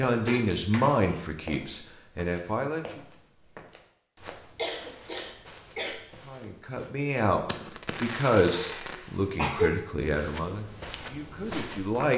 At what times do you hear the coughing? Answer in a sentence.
The coughing can be heard from 0.2 to 1.1 s, from 4.5 to 6.0 s and from 8.5 to 9.7 s.